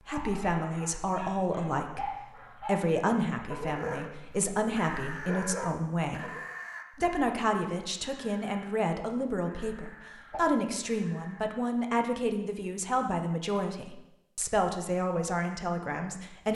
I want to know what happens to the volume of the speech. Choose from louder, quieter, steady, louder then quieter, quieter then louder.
steady.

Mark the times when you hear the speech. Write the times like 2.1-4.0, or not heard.
0.1-6.3, 7.0-16.4.